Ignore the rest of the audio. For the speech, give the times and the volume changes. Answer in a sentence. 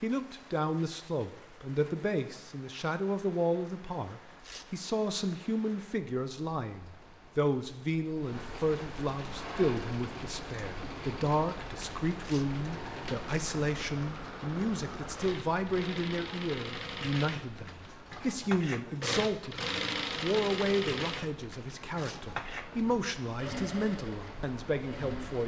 The speech can be heard from 0.0 to 25.4 s, at a steady volume.